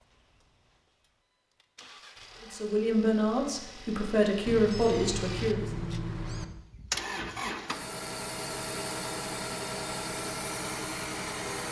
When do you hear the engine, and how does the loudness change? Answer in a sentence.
You can hear the engine from 0.0 to 11.6 s, getting louder.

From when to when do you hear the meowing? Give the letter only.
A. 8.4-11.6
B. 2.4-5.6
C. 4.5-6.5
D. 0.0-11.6
C.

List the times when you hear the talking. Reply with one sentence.
The talking can be heard from 2.4 to 5.6 s.